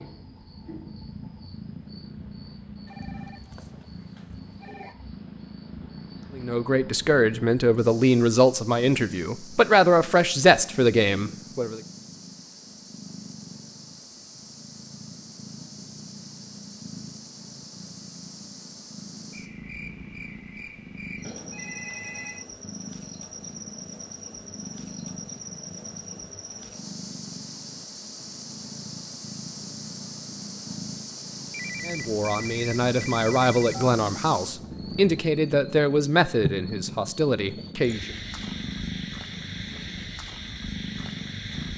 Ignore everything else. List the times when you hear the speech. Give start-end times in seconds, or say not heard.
6.3-11.8, 31.9-38.1.